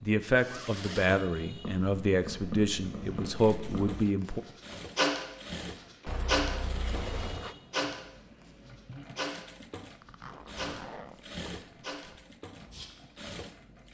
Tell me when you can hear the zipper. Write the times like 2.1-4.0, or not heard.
0.3-1.1, 6.0-7.5, 10.0-12.2.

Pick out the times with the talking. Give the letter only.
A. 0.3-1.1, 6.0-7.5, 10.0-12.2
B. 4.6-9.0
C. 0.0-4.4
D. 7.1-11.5
C.